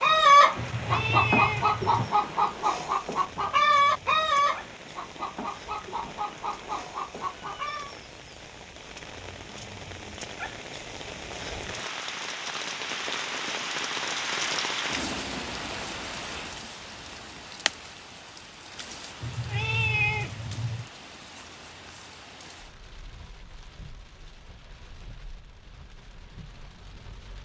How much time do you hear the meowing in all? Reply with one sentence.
The meowing can be heard for 3 seconds in total.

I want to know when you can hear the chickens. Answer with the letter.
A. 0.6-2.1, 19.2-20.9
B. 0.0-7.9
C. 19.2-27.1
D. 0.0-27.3
B.